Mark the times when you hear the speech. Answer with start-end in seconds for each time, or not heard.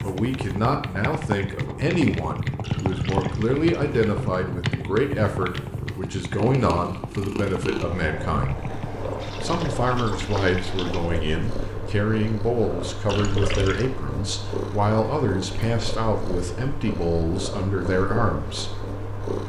0.0-8.6, 9.4-18.7.